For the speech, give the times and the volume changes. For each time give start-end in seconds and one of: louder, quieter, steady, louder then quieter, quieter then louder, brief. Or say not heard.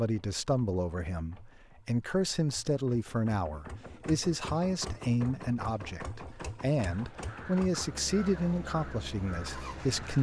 0.0-10.1 steady.